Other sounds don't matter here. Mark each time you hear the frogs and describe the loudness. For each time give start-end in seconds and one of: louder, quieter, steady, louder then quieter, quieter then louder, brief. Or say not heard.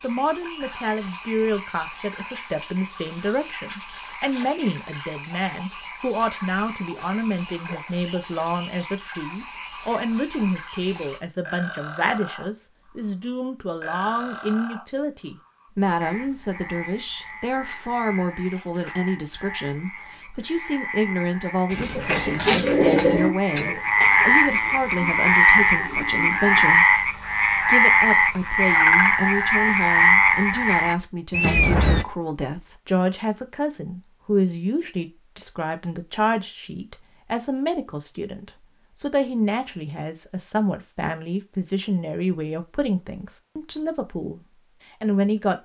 0.0-32.0 louder.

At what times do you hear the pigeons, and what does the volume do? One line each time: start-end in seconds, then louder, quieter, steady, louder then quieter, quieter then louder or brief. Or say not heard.
21.7-26.8 quieter then louder.